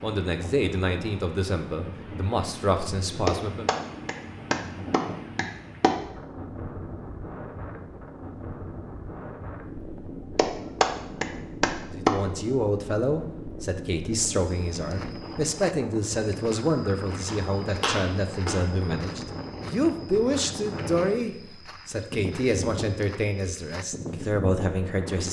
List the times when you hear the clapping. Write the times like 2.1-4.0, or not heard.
3.2-6.0, 10.3-12.2, 17.2-18.7.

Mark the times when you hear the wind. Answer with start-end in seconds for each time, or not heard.
0.0-25.2.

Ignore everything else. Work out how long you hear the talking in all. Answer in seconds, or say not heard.
17 s.